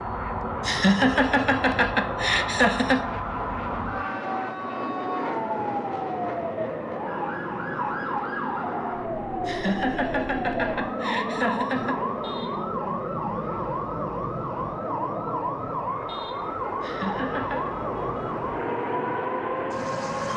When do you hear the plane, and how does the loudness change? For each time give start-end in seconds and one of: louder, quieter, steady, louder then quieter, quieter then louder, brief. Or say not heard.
0.0-20.3 steady.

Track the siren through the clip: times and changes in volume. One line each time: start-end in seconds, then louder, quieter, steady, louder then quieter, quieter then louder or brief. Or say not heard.
0.0-20.3 steady.